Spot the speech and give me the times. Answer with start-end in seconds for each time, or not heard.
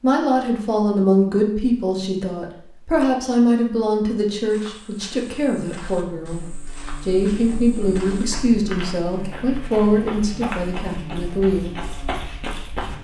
0.0-11.8.